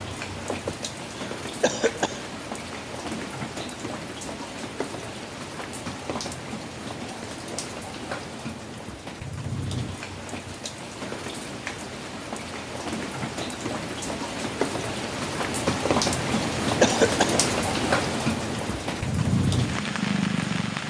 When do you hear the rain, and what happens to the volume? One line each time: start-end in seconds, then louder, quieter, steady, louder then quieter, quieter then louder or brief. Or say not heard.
0.0-20.8 louder.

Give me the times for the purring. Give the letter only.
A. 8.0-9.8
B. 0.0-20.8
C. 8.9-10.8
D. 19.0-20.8
D.